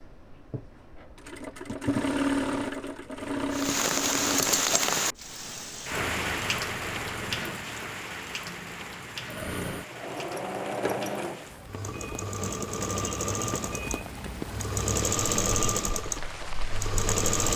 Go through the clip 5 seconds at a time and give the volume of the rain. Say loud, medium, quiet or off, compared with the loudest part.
loud, medium, quiet, quiet.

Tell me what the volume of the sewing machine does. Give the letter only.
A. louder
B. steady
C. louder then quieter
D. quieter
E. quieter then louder
E.